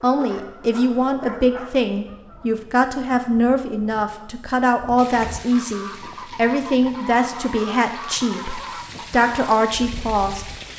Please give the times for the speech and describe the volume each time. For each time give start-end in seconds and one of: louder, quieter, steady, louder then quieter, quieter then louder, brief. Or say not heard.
0.0-10.4 steady.